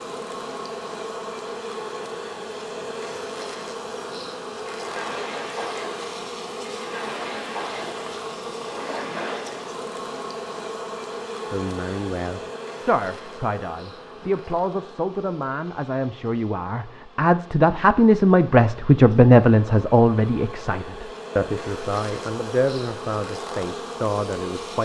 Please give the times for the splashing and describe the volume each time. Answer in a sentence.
The splashing can be heard from 4.7 to 9.7 s, getting quieter then louder.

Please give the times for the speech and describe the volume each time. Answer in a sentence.
You can hear the speech from 11.5 to 24.8 s, getting louder then quieter.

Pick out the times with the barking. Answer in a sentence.
The barking can't be heard in this clip.